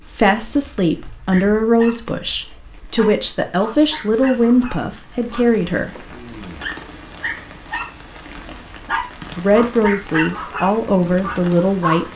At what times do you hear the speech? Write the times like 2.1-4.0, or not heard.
0.1-6.0, 9.3-12.1.